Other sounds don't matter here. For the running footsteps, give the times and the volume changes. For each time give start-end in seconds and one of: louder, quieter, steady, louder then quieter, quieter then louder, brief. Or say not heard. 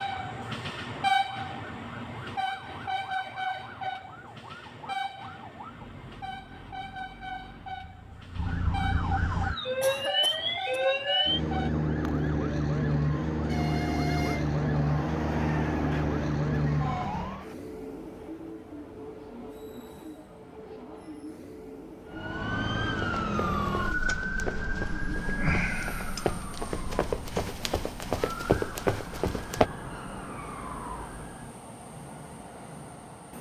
22.8-29.7 louder.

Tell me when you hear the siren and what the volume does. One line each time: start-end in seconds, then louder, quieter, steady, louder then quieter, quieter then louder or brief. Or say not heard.
0.0-17.4 louder
22.1-31.6 quieter.